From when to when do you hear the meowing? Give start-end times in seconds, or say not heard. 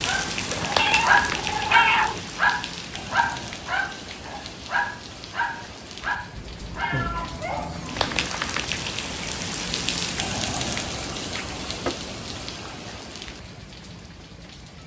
0.8-2.2, 6.3-8.3, 10.8-12.0.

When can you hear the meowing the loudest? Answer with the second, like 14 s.
2 s.